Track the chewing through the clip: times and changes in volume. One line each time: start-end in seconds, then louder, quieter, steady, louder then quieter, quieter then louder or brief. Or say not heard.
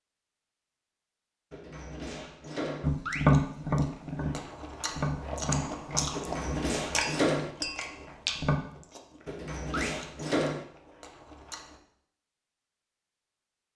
3.0-11.8 louder then quieter.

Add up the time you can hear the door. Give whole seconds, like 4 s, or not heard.
4 s.